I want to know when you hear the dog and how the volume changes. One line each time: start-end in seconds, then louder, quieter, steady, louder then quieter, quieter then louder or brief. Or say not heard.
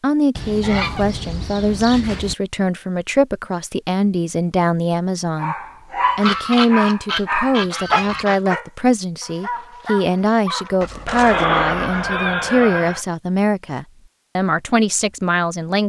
5.3-12.2 quieter.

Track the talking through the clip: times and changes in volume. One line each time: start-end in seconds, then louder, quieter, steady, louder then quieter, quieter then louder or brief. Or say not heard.
0.0-5.5 steady
6.2-15.8 steady.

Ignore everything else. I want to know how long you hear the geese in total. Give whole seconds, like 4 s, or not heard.
6 s.